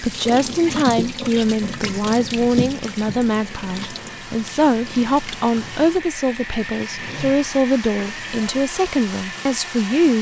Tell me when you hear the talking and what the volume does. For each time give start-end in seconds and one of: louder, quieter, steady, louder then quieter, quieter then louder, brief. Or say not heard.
0.0-10.1 steady.